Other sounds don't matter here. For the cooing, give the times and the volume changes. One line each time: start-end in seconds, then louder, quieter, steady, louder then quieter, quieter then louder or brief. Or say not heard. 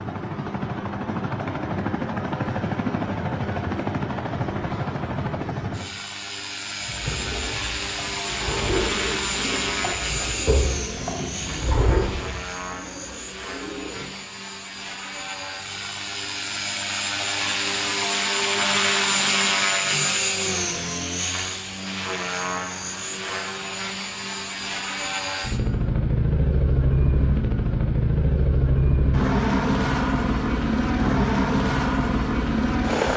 6.8-14.2 louder then quieter.